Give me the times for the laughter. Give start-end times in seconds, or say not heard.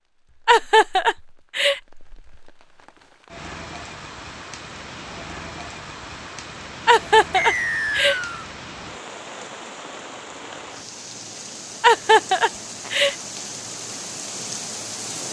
0.5-1.8, 6.8-8.2, 11.8-13.2.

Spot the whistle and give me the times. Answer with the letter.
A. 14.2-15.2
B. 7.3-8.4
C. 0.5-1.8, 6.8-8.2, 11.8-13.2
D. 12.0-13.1
B.